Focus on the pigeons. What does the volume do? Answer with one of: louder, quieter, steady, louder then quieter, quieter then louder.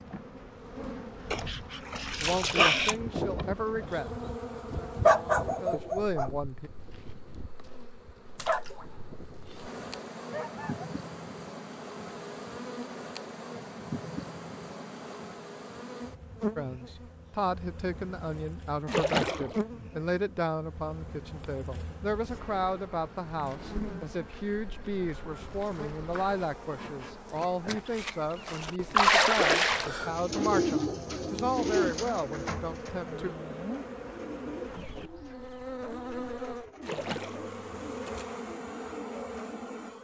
quieter.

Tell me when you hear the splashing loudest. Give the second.
29 s.